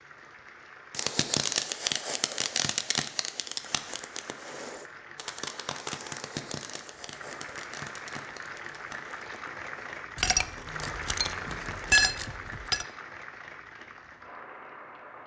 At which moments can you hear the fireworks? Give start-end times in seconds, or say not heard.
0.9-11.9.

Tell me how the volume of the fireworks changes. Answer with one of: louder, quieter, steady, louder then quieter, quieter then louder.
quieter.